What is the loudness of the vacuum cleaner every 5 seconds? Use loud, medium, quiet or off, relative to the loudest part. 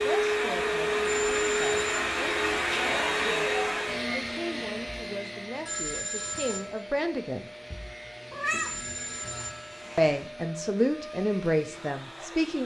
loud, quiet, quiet.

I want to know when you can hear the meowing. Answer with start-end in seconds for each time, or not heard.
8.3-9.6.